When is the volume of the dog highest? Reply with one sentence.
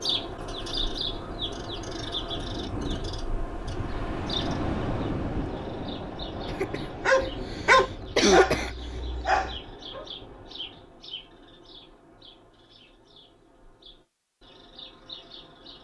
The volume of the dog peaks at 8 seconds.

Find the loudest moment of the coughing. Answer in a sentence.
The volume of the coughing peaks at 8 seconds.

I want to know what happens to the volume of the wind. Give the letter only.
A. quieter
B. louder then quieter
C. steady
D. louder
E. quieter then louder
B.